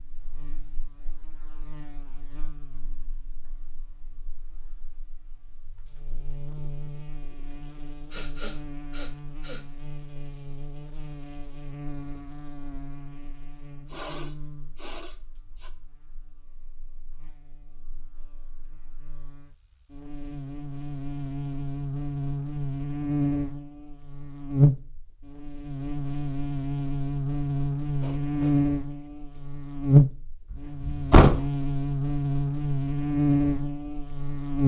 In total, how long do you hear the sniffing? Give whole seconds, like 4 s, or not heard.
5 s.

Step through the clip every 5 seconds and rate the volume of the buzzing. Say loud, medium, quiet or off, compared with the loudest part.
quiet, quiet, quiet, quiet, loud, loud, loud.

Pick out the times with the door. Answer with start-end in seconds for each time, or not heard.
30.5-31.4.